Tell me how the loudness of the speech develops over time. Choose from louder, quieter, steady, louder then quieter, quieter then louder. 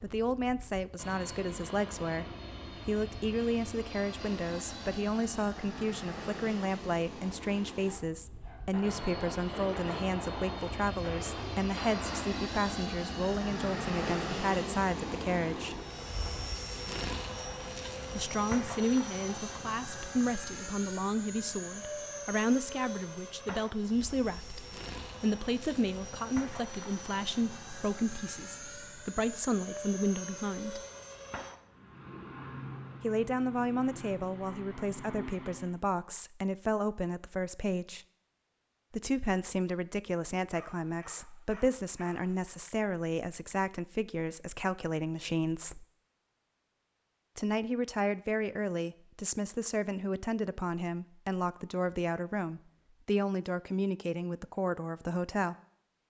steady.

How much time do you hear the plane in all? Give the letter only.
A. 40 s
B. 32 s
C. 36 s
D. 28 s
C.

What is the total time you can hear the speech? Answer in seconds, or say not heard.
49 s.